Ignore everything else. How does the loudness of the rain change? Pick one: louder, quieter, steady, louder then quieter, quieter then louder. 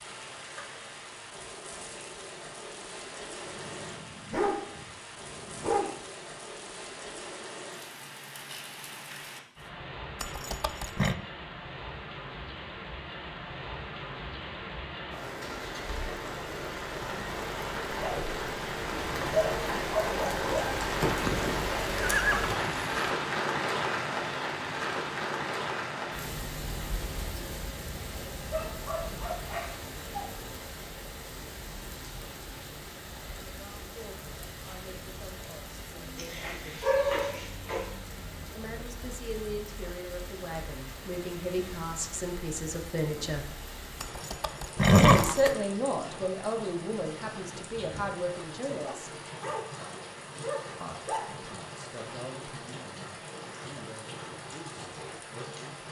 louder then quieter.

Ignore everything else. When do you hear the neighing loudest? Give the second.
45 s.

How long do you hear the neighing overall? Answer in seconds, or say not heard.
4 s.